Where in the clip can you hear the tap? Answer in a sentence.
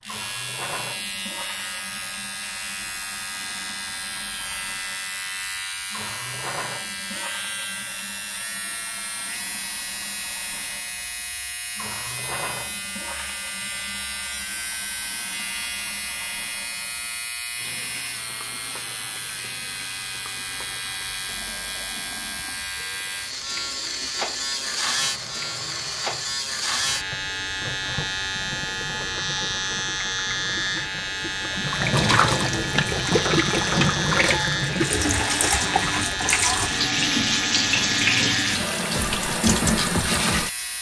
You can hear the tap from 0.1 to 40.7 s.